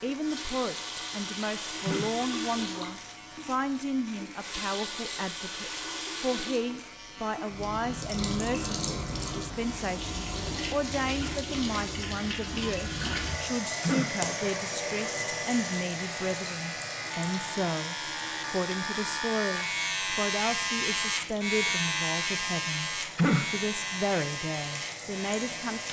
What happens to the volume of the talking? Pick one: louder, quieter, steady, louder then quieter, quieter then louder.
steady.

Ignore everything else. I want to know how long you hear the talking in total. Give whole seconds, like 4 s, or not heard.
26 s.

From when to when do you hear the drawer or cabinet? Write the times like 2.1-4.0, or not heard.
not heard.